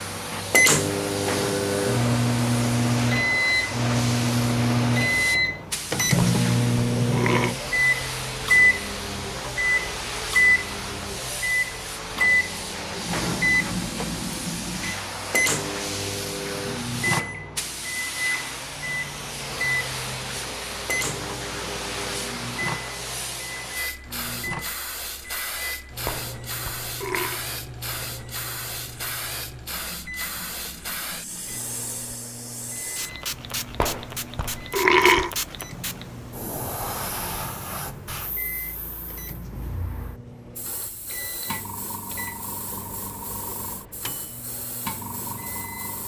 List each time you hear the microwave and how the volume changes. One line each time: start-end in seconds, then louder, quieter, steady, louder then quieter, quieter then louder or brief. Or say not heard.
0.0-45.9 quieter.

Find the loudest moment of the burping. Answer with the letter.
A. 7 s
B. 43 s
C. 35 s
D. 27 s
C.